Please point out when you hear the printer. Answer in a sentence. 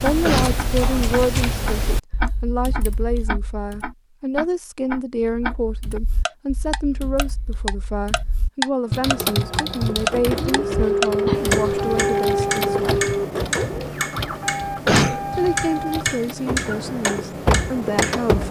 You can hear the printer from 8.9 to 18.4 s.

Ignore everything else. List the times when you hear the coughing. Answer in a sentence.
You can hear the coughing from 0.2 to 1.1 s and from 14.8 to 15.3 s.